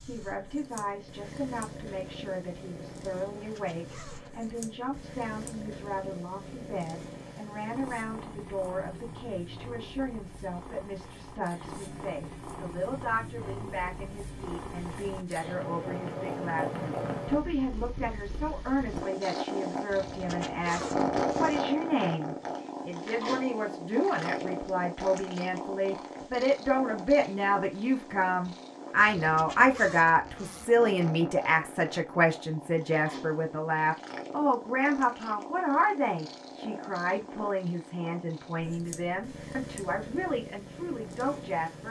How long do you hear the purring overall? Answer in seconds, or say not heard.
42 s.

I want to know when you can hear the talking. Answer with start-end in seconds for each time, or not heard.
0.0-41.8.